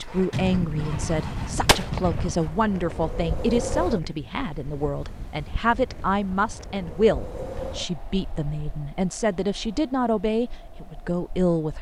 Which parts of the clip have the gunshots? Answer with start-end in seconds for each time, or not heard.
0.3-2.4.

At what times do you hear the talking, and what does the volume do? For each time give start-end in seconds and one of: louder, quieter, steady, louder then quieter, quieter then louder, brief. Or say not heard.
0.0-11.7 steady.